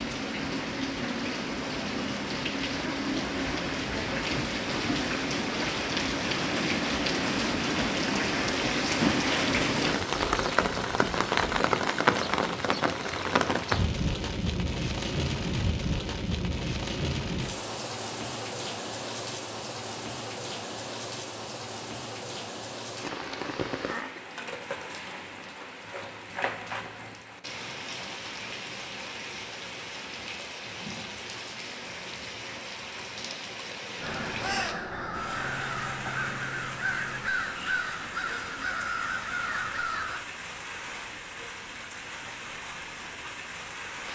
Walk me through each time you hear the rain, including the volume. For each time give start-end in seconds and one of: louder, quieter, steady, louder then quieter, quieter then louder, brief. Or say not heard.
0.0-44.0 quieter.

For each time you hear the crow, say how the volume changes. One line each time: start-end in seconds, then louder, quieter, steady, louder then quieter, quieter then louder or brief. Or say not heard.
34.0-40.2 steady.